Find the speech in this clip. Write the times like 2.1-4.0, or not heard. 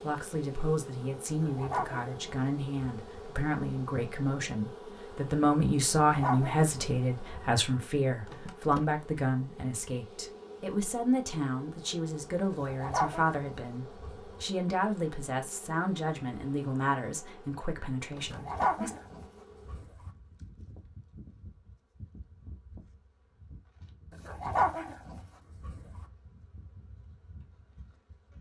0.0-18.9.